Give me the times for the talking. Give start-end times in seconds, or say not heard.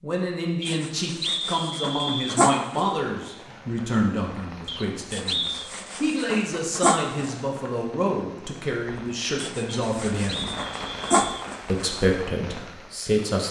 0.0-10.5, 11.7-13.4.